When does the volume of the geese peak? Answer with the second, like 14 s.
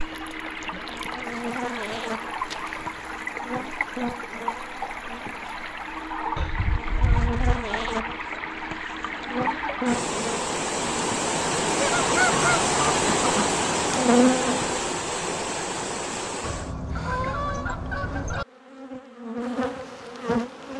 12 s.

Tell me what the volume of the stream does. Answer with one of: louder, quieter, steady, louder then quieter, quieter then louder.
louder.